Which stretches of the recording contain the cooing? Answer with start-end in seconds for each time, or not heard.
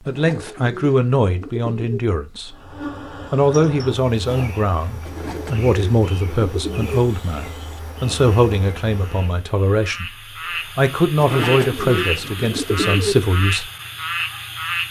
0.1-2.0, 5.0-7.0, 11.2-13.2.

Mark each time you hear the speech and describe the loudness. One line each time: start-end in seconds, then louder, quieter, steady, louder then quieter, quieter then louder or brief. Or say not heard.
0.1-2.5 brief
3.3-13.7 steady.